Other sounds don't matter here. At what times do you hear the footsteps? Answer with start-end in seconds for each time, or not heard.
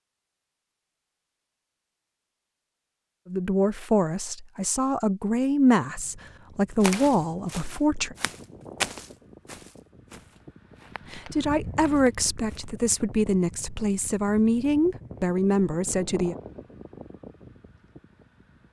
6.8-12.7.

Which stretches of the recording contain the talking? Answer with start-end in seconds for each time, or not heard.
3.2-8.2, 11.1-16.4.